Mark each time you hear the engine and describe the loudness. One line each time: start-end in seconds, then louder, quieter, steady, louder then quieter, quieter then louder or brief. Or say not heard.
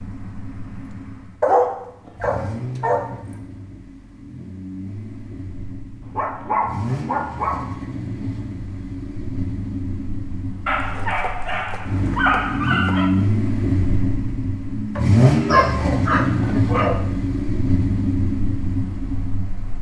0.0-19.7 louder.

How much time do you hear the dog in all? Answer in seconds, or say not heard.
8 s.